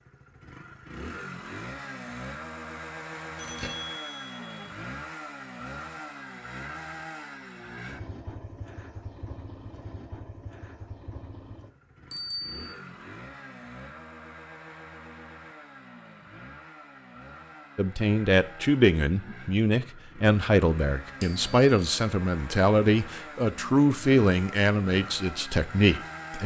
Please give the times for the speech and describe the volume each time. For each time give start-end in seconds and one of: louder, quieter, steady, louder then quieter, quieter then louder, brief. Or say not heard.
17.8-26.4 steady.